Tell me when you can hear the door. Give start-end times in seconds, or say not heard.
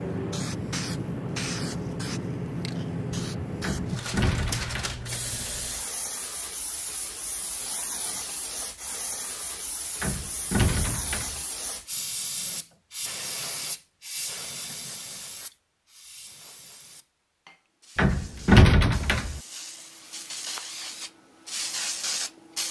3.6-5.0, 10.0-11.4, 17.9-19.4.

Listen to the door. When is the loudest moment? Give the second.
19 s.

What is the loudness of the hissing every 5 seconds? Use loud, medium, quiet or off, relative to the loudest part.
loud, medium, medium, quiet, loud.